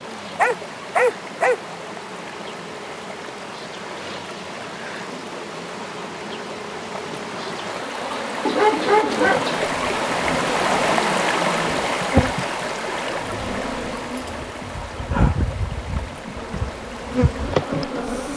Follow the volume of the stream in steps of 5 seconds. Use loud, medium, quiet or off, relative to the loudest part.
quiet, medium, loud, quiet.